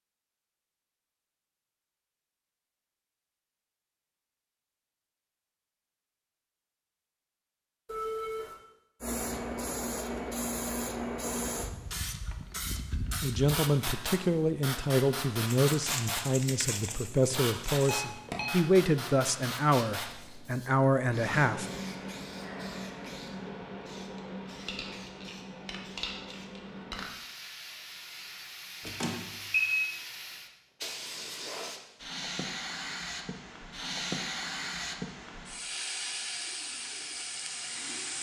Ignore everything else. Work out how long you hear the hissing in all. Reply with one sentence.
You can hear the hissing for 29 seconds altogether.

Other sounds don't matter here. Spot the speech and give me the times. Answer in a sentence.
You can hear the speech from 13.2 to 21.6 s.